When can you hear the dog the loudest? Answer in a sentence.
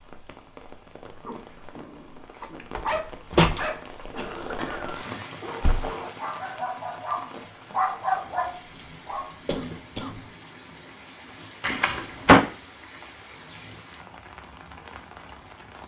The loudest moment of the dog is at 8 seconds.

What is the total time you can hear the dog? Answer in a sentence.
You can hear the dog for 8 seconds altogether.